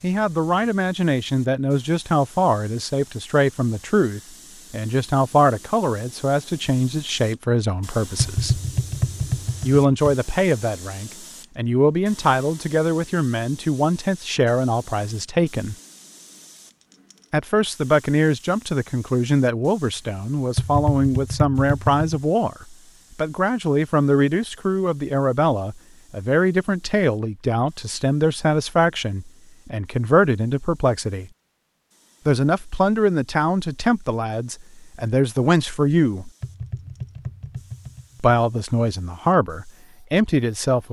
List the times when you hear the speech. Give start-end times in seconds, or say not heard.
0.0-8.6, 9.6-15.8, 17.3-31.3, 32.2-36.3, 38.2-40.8.